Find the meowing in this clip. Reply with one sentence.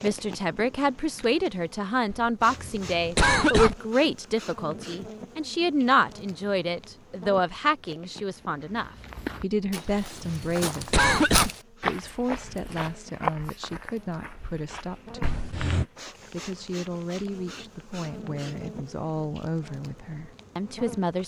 The meowing can't be heard in this clip.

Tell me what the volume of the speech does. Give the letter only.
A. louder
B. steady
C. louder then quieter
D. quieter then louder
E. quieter
E.